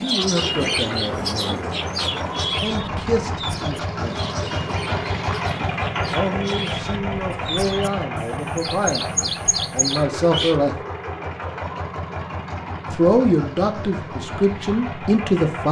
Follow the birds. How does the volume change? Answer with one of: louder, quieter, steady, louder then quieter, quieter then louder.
quieter then louder.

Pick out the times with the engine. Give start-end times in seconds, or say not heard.
0.1-15.6.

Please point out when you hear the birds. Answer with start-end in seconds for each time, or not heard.
0.0-10.6.